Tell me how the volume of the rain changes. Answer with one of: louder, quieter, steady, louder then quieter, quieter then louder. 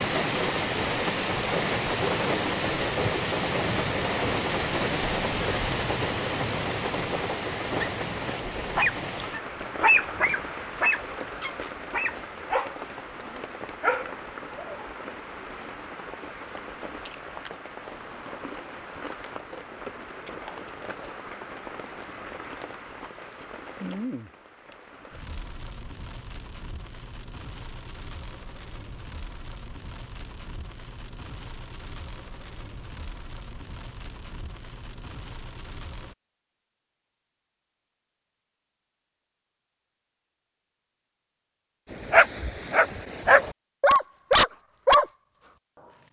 quieter.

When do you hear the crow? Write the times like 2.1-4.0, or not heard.
not heard.